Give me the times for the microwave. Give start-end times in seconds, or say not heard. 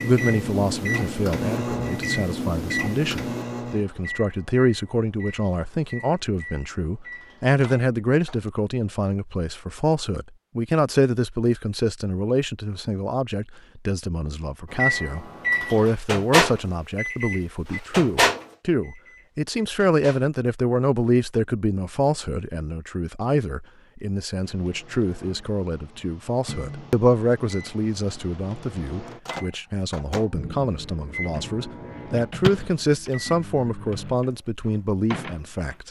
0.0-8.5, 14.7-20.3, 24.4-35.8.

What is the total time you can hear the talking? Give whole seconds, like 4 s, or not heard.
36 s.